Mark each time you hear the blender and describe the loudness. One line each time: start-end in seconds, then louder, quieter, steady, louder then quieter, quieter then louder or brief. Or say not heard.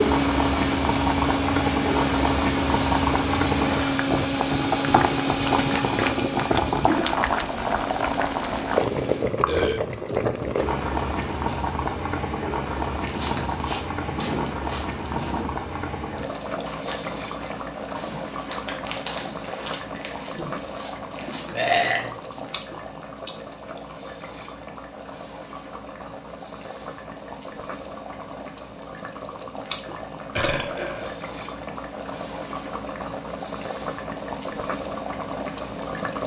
0.0-9.4 quieter.